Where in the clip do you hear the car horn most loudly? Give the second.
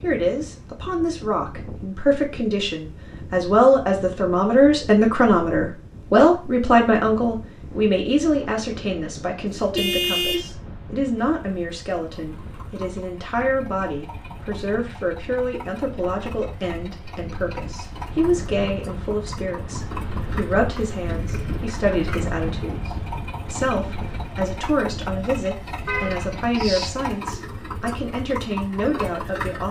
10 s.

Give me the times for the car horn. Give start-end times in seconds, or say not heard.
9.1-10.6, 25.9-26.9.